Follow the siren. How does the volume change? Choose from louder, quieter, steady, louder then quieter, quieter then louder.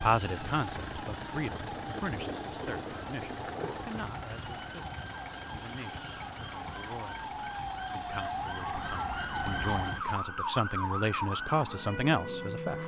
louder.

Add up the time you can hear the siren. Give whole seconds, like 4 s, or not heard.
13 s.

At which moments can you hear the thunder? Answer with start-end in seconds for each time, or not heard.
1.6-4.1.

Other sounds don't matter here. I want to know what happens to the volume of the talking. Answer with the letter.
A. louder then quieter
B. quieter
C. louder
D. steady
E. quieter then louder
E.